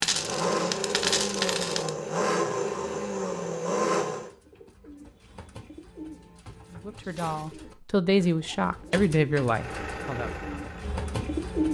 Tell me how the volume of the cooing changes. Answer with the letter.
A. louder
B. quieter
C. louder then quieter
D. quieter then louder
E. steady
A.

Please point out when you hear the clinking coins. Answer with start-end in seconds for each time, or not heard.
0.0-1.9, 7.0-7.5.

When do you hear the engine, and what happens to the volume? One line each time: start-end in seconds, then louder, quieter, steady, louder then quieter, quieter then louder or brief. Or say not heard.
0.0-4.3 steady
9.5-11.6 brief.